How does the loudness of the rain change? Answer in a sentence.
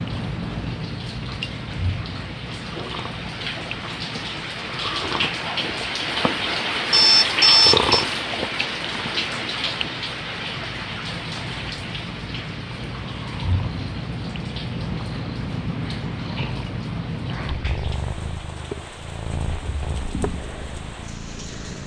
The loudness of the rain goes up, then down.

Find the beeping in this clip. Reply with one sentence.
The beeping can be heard from 6.9 to 8.1 s.